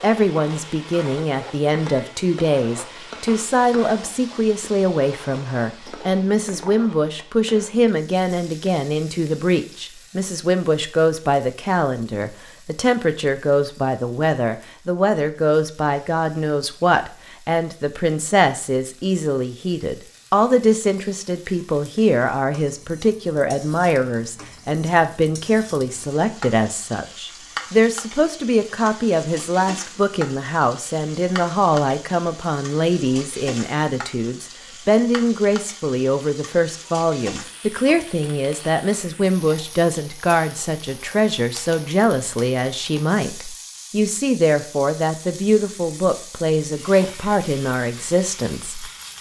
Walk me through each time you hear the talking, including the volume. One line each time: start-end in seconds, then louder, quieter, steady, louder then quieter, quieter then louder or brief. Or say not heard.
0.0-48.9 steady.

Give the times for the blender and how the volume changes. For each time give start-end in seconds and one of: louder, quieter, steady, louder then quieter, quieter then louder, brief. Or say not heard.
not heard.